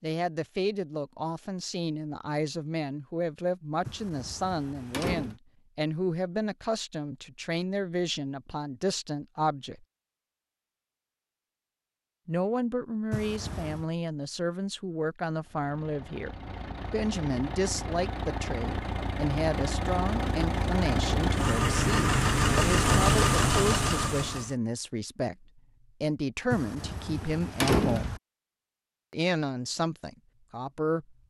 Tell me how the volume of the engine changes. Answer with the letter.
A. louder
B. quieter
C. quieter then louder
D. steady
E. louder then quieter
A.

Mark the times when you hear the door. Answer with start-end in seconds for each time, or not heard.
3.9-5.3, 13.1-13.8, 26.5-28.2.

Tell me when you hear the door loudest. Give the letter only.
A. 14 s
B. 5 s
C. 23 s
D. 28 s
D.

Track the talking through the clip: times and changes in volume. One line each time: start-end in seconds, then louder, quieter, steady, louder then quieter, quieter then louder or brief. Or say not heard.
0.0-9.8 steady
12.2-28.1 steady
29.1-31.1 brief.